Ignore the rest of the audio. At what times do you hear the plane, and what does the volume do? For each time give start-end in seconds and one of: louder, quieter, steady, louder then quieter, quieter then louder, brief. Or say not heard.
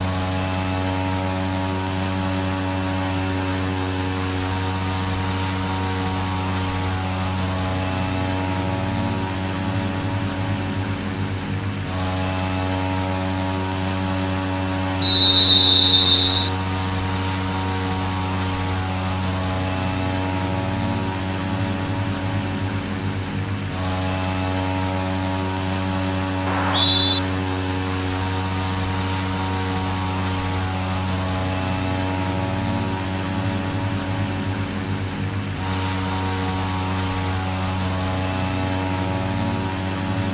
0.0-40.2 steady.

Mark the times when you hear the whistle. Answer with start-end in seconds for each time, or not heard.
15.0-16.5, 26.4-27.2.